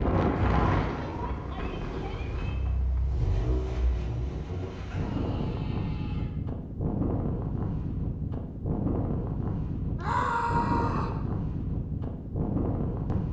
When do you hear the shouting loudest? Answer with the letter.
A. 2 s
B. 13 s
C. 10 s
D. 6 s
C.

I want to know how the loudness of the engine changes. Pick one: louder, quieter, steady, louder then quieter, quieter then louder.
louder then quieter.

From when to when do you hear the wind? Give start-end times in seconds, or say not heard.
0.0-13.2.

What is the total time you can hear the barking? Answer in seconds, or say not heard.
not heard.